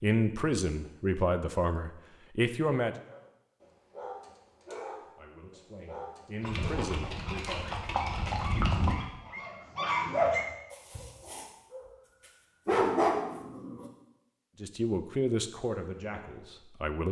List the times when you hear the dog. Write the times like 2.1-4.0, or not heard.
3.0-11.8, 12.7-13.8.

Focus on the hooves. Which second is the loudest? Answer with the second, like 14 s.
9 s.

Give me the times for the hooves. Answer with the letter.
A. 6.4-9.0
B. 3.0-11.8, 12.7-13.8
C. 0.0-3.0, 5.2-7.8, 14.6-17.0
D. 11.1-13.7
A.